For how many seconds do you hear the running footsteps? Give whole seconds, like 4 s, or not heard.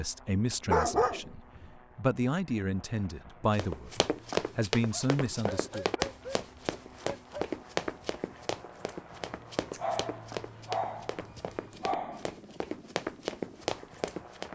11 s.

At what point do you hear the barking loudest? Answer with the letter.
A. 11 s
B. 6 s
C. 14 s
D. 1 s
D.